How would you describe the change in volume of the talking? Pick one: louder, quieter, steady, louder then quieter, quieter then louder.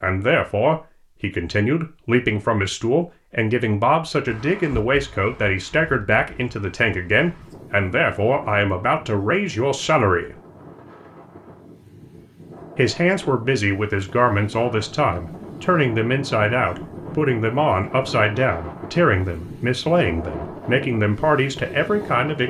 steady.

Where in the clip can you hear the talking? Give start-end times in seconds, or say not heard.
0.0-10.3, 12.8-22.4.